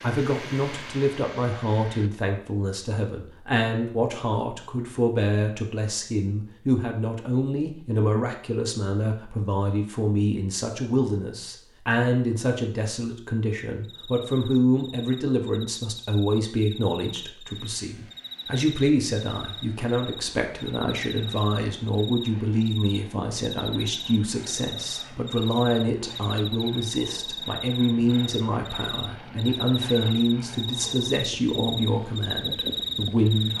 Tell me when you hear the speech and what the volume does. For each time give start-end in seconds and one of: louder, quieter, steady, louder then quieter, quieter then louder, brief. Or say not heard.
0.0-33.5 steady.